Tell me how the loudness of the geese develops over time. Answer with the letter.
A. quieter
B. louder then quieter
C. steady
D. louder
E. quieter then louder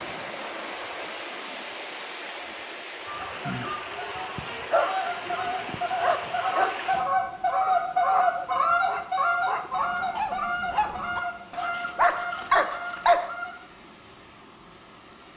B.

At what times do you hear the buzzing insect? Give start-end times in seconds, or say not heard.
not heard.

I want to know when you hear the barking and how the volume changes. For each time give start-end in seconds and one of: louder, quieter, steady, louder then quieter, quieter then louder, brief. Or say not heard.
4.7-13.2 quieter then louder.